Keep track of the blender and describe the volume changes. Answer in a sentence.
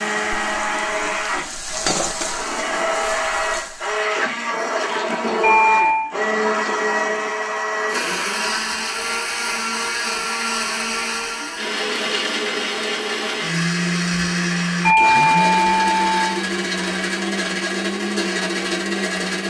The volume of the blender stays about the same.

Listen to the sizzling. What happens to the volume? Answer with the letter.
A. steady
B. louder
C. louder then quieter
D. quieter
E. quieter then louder
C.